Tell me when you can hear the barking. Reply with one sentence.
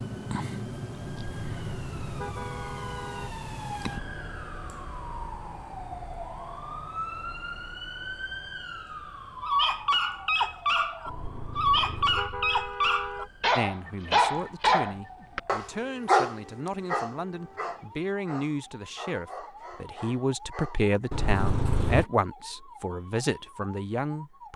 You can hear the barking from 9.4 to 20.9 s.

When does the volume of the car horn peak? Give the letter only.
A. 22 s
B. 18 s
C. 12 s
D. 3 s
A.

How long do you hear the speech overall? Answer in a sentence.
The speech can be heard for 11 seconds in total.